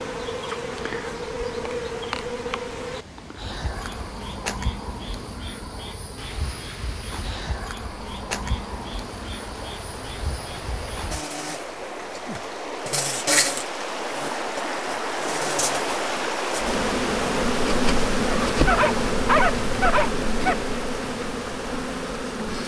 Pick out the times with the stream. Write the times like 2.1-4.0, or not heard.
0.0-22.6.